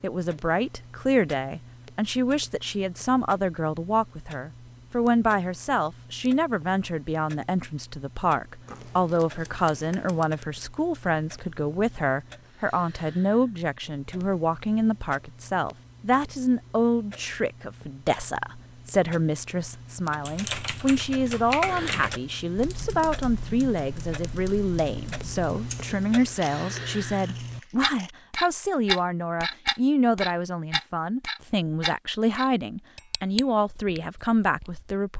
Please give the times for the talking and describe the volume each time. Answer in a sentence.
You can hear the talking from 0.0 to 35.1 s, at a steady volume.